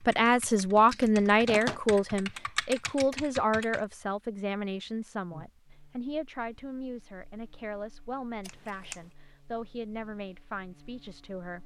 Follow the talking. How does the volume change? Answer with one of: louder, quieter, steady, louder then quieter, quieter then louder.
quieter.